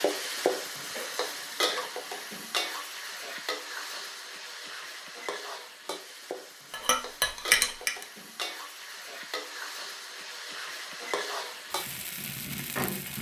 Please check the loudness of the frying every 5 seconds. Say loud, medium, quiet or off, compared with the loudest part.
loud, medium, loud.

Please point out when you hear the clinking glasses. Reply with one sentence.
You can hear the clinking glasses from 6.7 to 8.1 s.